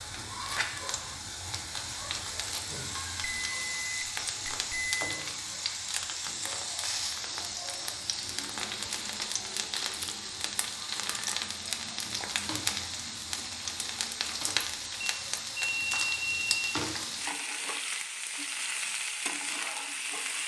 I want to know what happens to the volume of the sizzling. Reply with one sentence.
The volume of the sizzling stays about the same.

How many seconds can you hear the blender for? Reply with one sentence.
The blender can't be heard in this clip.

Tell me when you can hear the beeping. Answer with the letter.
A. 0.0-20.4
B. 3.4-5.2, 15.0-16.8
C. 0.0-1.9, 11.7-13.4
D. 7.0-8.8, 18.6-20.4
B.